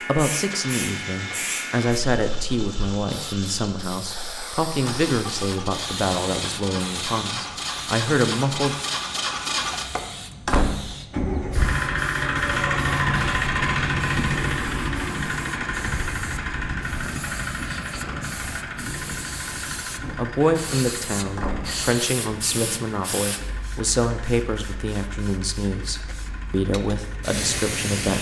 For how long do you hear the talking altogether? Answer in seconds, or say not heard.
17 s.